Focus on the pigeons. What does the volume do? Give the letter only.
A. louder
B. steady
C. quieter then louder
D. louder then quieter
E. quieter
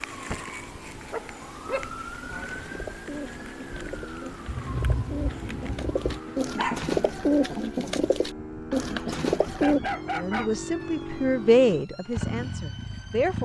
A.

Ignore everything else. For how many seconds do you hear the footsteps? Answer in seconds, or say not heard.
not heard.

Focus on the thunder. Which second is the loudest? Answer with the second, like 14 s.
5 s.